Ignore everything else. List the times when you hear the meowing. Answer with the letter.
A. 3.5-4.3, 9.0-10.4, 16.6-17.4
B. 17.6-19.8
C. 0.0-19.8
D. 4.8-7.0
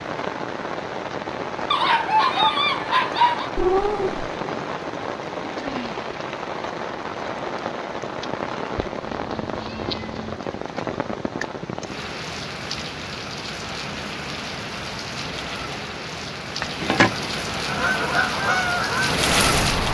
A.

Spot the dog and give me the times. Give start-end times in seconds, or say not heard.
1.7-3.5.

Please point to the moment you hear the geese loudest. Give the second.
19 s.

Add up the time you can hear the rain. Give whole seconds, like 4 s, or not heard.
20 s.